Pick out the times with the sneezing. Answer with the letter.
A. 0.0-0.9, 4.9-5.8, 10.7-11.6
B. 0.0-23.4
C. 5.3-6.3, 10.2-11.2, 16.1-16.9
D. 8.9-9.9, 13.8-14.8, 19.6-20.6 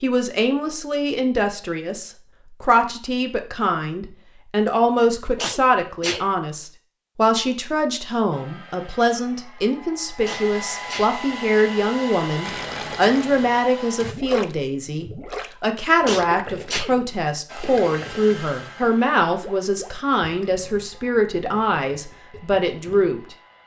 C.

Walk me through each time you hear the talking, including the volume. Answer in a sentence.
The talking can be heard from 0.0 to 23.4 s, at a steady volume.